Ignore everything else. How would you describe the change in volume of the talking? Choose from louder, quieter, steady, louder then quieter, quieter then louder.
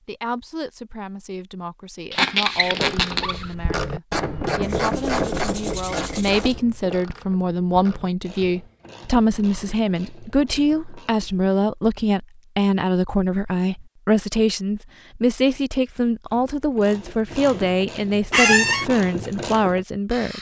louder.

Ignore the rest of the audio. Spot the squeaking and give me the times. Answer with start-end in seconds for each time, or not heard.
2.1-3.5, 18.3-18.9.